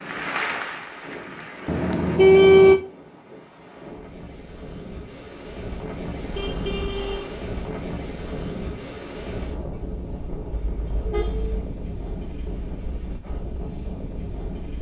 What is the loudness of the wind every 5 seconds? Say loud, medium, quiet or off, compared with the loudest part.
medium, loud, loud.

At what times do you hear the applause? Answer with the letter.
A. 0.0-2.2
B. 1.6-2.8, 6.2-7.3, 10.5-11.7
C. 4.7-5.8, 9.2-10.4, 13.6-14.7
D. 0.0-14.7
A.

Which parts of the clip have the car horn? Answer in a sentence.
You can hear the car horn from 1.6 to 2.8 s, from 6.2 to 7.3 s and from 10.5 to 11.7 s.